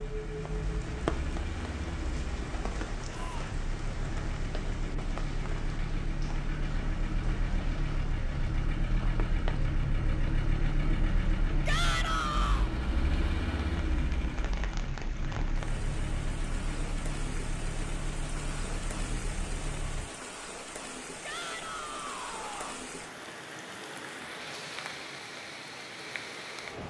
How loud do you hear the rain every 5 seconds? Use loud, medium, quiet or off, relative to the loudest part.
loud, medium, medium, loud, loud, loud.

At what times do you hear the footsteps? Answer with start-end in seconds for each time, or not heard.
not heard.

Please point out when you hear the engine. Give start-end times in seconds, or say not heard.
0.0-20.1.